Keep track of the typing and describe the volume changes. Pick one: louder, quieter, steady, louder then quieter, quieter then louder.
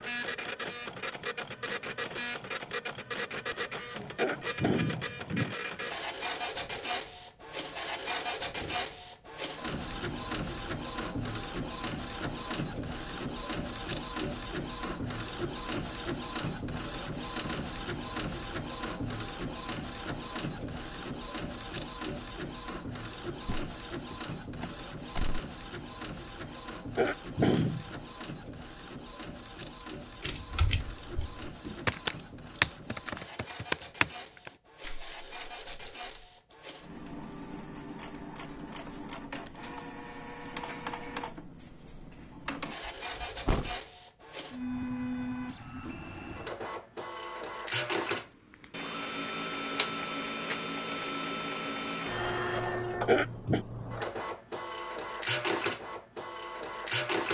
louder then quieter.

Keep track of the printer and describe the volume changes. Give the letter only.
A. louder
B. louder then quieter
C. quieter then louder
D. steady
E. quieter
C.